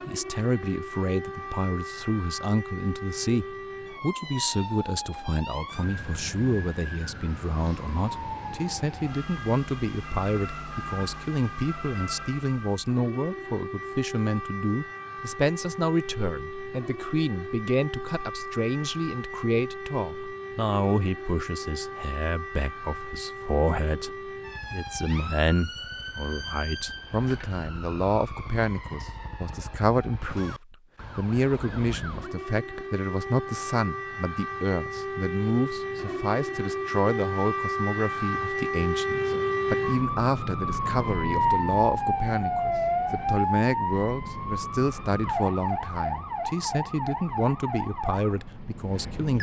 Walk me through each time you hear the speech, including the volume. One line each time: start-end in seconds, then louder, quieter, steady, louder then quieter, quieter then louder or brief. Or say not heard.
0.1-49.3 steady.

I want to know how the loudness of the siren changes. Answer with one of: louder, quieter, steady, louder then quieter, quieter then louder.
louder.